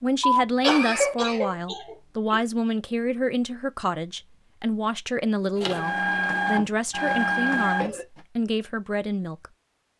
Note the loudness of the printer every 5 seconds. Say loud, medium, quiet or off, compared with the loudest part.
off, loud.